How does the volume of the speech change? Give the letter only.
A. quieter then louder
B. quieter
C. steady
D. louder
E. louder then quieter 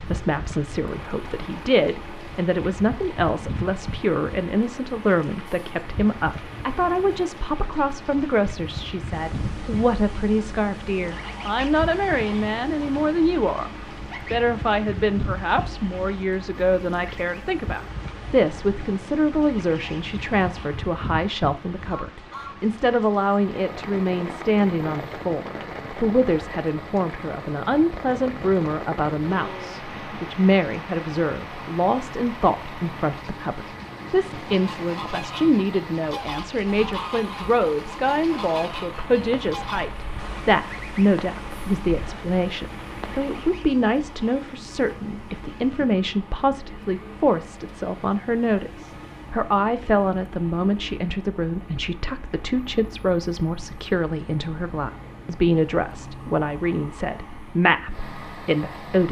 C.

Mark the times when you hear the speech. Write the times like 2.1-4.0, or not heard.
0.0-13.7, 14.3-59.0.